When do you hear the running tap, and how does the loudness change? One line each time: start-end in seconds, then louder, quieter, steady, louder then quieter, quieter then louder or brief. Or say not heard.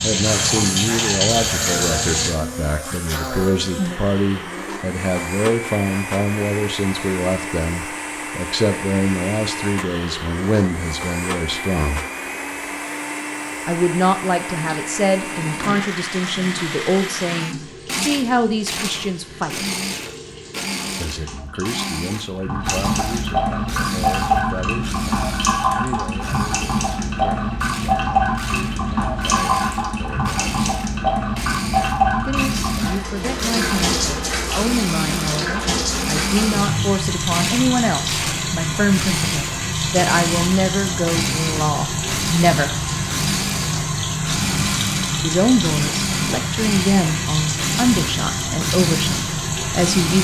0.0-2.3 brief
14.4-50.1 louder.